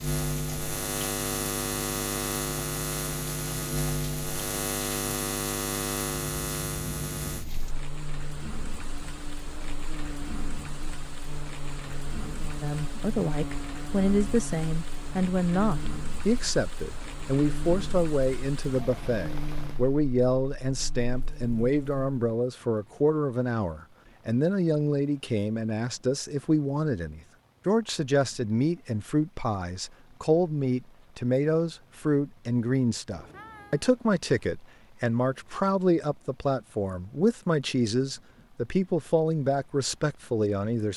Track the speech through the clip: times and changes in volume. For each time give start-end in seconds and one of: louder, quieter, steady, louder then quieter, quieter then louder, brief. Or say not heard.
12.6-40.9 steady.